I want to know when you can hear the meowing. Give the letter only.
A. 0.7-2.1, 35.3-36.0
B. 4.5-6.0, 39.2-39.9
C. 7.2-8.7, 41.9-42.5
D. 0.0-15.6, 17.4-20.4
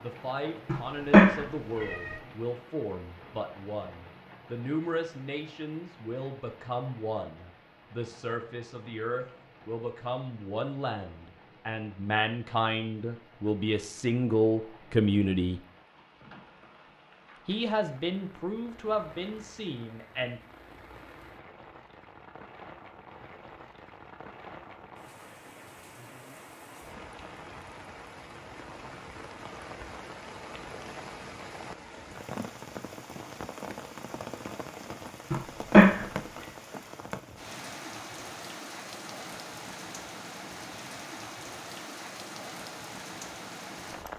A.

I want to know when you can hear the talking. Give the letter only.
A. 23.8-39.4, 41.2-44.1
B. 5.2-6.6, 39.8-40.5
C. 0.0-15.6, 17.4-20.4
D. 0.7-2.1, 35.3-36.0
C.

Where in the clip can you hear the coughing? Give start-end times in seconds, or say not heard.
not heard.